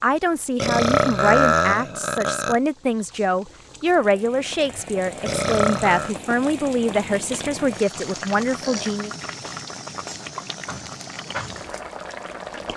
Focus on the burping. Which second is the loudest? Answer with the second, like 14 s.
1 s.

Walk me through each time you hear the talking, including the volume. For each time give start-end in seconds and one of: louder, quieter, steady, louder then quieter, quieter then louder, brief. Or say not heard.
0.0-9.1 steady.